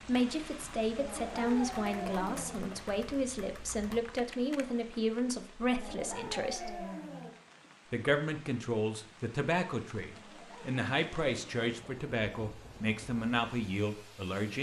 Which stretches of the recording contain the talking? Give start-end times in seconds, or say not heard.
0.1-6.8, 7.9-14.5.